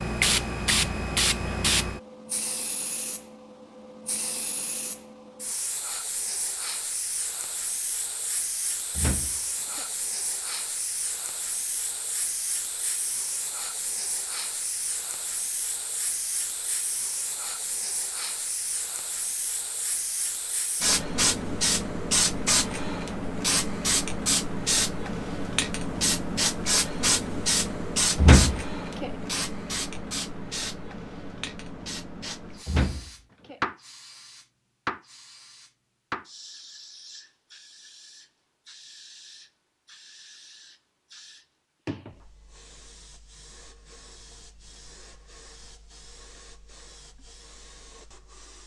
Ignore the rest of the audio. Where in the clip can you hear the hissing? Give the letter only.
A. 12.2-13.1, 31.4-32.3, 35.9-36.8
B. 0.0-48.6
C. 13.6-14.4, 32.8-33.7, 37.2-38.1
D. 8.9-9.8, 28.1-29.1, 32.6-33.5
B.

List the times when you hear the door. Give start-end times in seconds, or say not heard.
8.9-9.8, 28.1-29.1, 32.6-33.5.